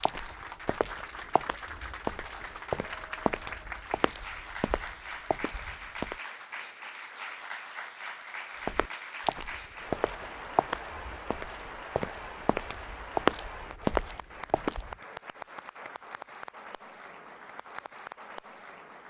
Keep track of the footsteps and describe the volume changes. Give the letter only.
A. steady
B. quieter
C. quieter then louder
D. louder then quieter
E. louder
E.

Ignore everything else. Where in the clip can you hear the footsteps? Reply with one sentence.
You can hear the footsteps from 0.0 to 6.2 s and from 8.7 to 14.9 s.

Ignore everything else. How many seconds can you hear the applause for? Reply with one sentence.
The applause can be heard for 19 seconds in total.